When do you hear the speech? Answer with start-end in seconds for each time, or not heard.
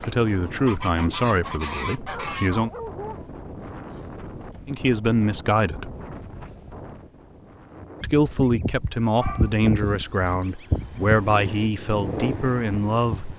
0.0-2.7, 4.7-6.0, 8.0-13.3.